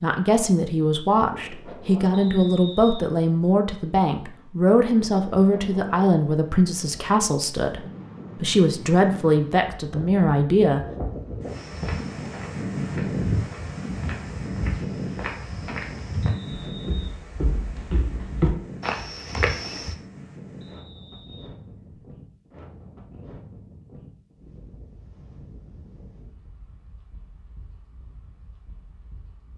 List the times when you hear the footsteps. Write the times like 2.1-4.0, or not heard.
11.5-19.9.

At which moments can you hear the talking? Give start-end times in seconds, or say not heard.
0.0-10.8.